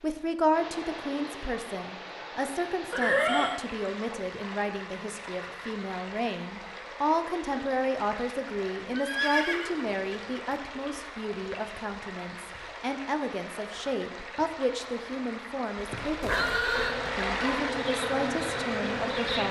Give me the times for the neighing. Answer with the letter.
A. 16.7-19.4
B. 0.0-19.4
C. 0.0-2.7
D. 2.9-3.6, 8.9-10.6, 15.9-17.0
D.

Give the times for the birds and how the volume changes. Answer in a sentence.
You can't hear the birds here.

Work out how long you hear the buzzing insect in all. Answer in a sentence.
You can hear the buzzing insect for 3 seconds altogether.